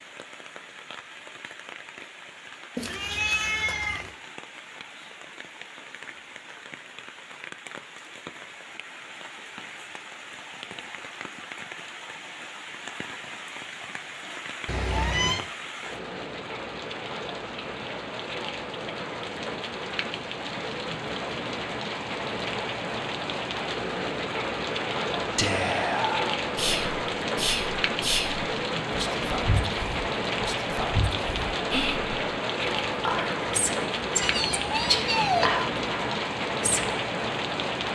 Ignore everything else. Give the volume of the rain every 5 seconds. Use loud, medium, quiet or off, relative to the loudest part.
quiet, quiet, medium, medium, loud, loud, loud, loud.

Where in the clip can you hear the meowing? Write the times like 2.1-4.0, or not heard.
2.8-4.1, 14.7-15.4, 34.2-35.6.